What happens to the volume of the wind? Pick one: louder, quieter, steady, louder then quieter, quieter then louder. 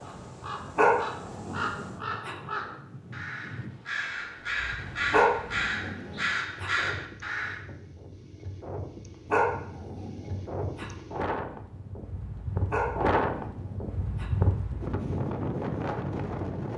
louder.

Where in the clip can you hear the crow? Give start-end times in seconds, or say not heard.
0.0-7.6.